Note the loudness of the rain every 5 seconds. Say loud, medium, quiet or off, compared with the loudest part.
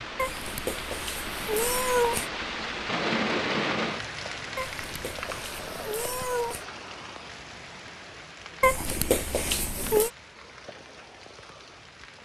loud, medium, quiet.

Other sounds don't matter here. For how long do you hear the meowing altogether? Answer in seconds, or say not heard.
6 s.